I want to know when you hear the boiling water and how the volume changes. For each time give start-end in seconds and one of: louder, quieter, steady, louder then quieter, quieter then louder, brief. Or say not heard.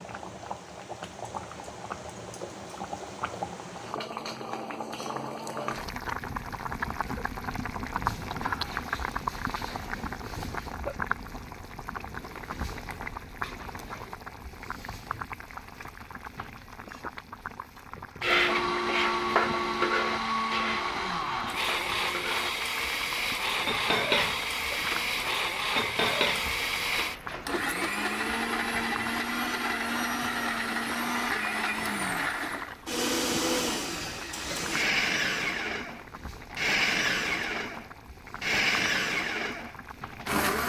0.0-40.4 quieter.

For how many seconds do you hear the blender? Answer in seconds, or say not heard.
22 s.